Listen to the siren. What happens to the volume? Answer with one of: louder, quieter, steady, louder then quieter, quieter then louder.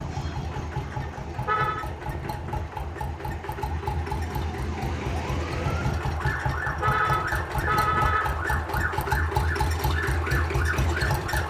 louder.